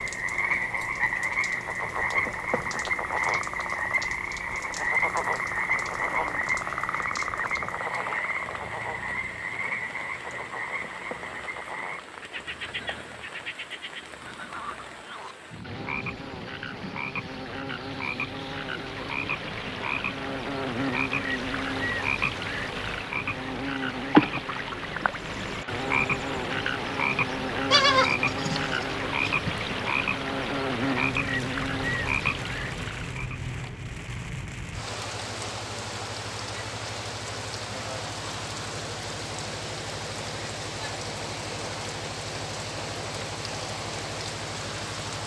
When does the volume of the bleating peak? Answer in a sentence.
The loudest moment of the bleating is at 28 seconds.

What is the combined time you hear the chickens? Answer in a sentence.
You can't hear the chickens here.